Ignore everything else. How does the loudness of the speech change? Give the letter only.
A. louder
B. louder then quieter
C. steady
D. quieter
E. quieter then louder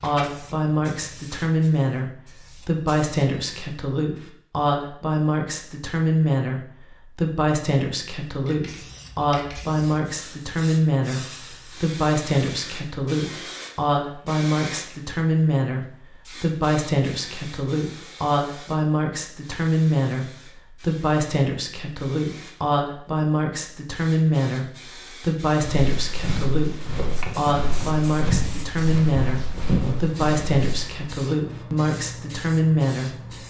C.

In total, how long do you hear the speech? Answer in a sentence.
You can hear the speech for 33 seconds altogether.